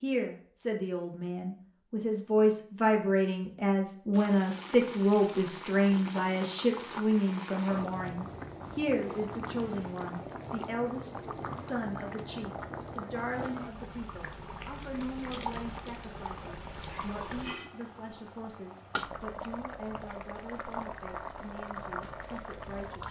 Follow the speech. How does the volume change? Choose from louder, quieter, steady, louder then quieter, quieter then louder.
quieter.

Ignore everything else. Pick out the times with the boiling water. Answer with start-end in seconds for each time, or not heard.
4.1-23.0.